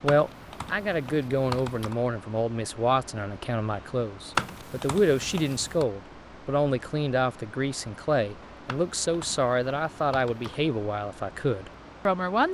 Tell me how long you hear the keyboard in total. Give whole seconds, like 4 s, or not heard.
5 s.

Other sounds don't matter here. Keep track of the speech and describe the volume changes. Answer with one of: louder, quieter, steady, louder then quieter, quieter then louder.
steady.